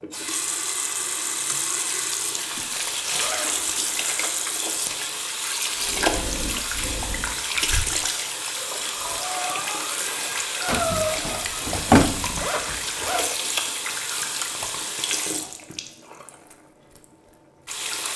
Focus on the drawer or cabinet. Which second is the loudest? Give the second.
12 s.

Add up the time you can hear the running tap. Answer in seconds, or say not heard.
18 s.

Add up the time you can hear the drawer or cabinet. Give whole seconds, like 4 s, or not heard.
2 s.